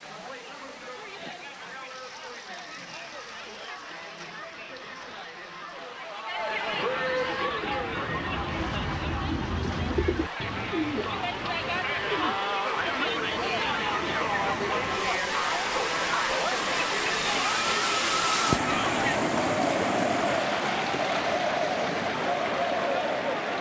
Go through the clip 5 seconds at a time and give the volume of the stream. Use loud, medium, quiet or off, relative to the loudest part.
quiet, quiet, medium, loud, loud.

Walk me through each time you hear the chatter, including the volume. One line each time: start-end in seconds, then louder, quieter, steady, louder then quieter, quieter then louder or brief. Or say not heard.
0.0-23.5 louder.